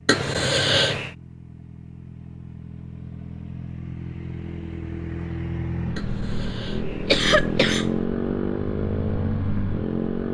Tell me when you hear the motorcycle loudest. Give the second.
8 s.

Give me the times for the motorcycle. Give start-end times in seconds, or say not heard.
0.0-10.2.